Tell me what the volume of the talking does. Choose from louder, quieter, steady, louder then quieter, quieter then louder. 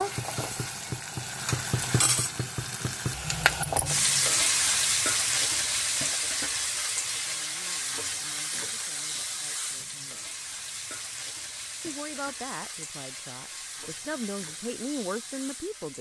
louder.